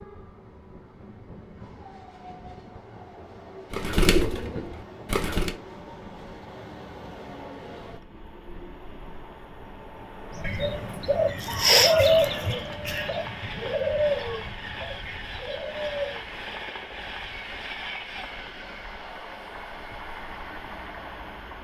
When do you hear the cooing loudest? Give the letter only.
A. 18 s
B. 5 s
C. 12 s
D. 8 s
C.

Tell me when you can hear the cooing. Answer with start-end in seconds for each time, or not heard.
3.7-5.6, 10.3-16.2.